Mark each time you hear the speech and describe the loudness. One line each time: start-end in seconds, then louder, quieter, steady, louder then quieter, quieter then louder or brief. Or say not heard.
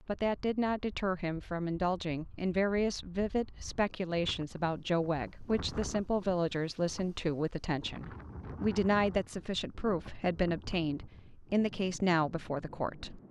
0.1-13.2 steady.